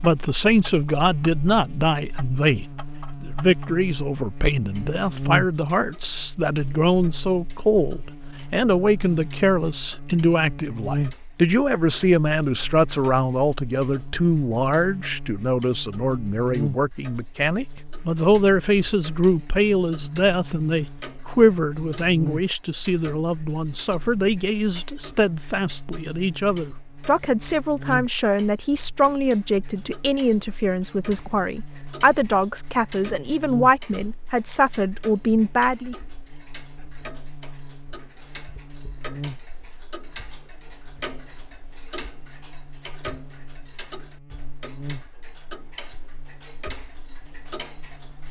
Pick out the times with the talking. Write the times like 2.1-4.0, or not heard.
0.0-36.0.